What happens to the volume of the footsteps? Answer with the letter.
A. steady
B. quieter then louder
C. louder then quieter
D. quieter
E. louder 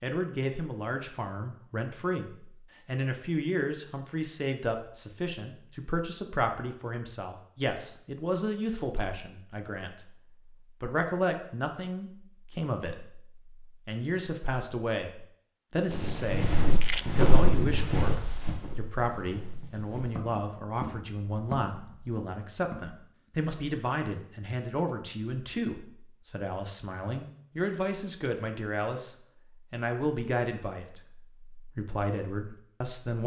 B.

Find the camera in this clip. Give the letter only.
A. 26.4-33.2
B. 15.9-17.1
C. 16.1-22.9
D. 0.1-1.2
B.